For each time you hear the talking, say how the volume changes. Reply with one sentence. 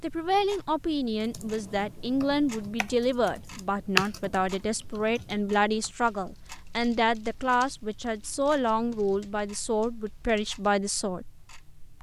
The talking can be heard from 0.0 to 11.2 s, at a steady volume.